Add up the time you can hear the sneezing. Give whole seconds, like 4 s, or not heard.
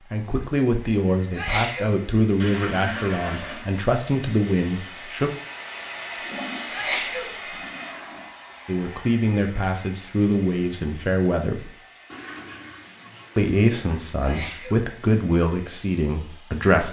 2 s.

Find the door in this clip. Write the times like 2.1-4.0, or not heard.
not heard.